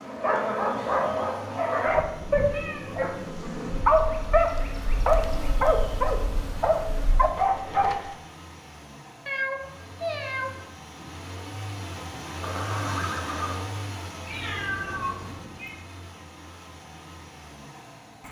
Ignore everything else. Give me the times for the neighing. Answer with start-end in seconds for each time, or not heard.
12.4-13.7.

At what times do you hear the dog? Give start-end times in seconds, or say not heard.
0.1-8.2.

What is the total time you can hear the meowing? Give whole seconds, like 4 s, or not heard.
3 s.